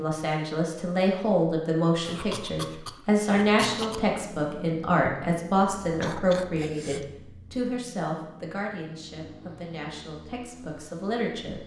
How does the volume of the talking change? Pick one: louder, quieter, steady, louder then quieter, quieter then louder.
quieter.